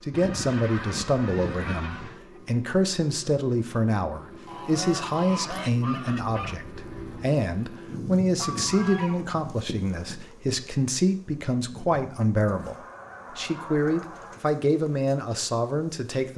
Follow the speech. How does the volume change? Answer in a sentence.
The volume of the speech stays about the same.